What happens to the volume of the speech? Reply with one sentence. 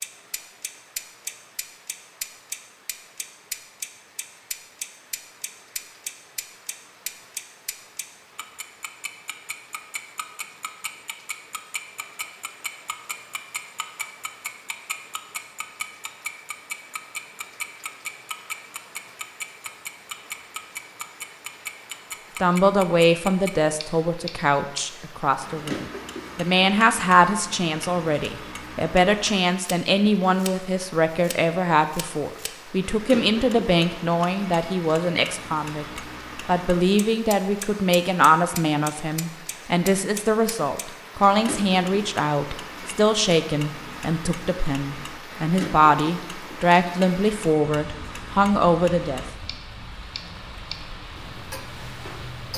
The loudness of the speech stays about the same.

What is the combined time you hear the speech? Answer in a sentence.
The speech can be heard for 27 seconds in total.